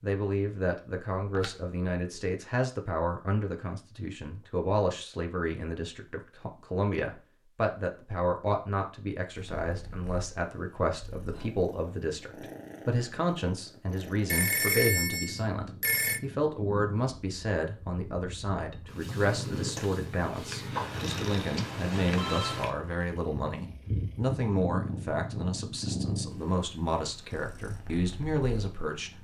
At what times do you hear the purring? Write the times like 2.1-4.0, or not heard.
9.3-29.1.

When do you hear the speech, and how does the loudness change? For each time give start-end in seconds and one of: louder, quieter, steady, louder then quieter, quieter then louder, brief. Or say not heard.
0.0-29.1 steady.